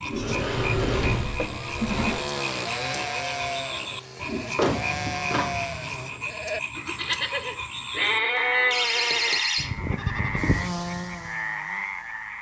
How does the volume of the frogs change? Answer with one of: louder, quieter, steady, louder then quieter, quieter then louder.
steady.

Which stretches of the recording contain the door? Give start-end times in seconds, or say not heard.
0.1-2.2, 4.3-6.2, 8.7-9.7.